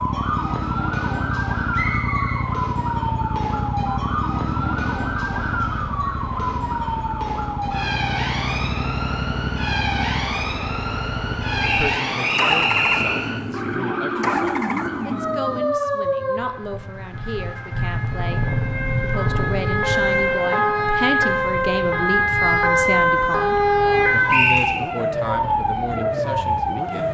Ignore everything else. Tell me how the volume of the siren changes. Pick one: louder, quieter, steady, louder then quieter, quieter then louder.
louder.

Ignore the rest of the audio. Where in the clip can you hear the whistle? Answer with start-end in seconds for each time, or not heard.
1.7-2.5, 11.6-13.2, 24.3-24.9.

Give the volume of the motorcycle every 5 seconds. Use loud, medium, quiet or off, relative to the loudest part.
loud, loud, loud, loud, medium, medium.